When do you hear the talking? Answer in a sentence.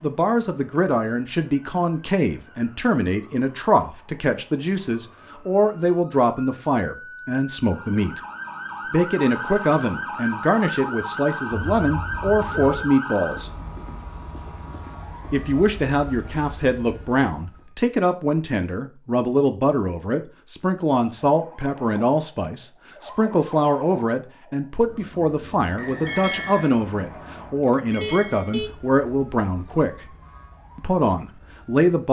The talking can be heard from 0.0 to 8.2 s, from 8.8 to 13.5 s, from 15.3 to 30.1 s and from 30.8 to 32.0 s.